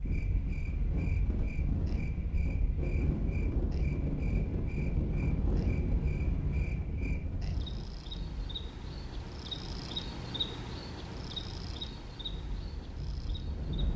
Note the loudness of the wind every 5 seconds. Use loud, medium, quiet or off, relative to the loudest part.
loud, loud, medium.